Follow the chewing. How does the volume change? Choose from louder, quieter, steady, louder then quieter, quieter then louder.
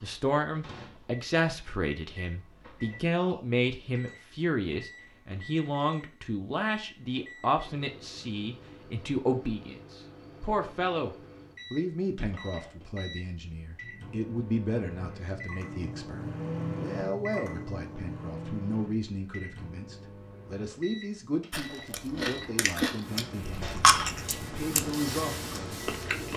louder then quieter.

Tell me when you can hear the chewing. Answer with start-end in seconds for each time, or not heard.
21.5-26.3.